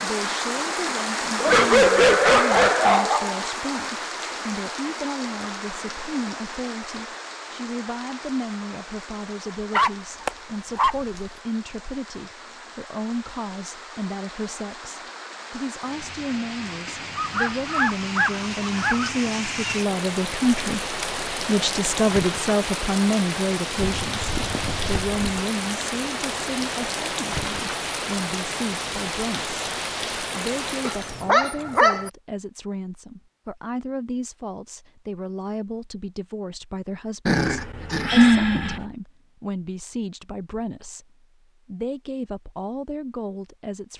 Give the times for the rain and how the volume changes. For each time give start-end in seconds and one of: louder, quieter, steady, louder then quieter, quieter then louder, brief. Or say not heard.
0.0-31.3 quieter then louder.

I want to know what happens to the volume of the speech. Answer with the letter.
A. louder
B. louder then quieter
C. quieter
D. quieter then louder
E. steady
B.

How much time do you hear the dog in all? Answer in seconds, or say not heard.
10 s.